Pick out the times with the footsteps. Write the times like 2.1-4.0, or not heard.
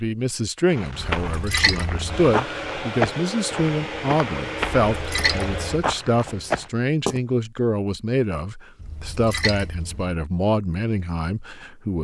0.7-7.2.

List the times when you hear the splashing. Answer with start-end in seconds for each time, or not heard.
1.1-2.3, 4.8-5.8, 8.8-10.2.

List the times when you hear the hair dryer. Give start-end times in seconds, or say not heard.
2.0-5.8.